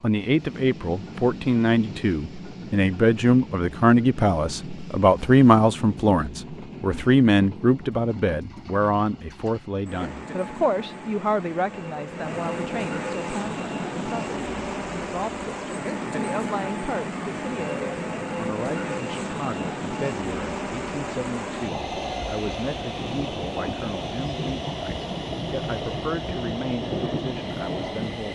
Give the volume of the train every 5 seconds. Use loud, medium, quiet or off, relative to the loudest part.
medium, medium, loud, loud, loud, loud.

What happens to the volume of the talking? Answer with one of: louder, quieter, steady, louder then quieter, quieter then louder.
quieter.